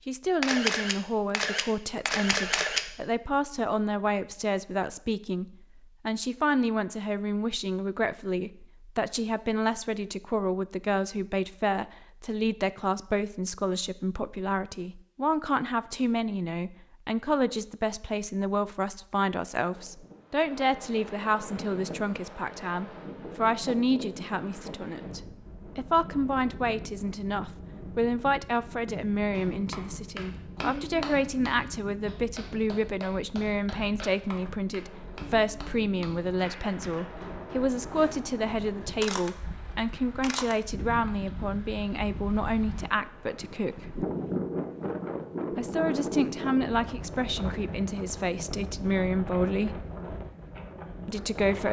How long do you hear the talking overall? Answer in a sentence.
The talking can be heard for 49 seconds in total.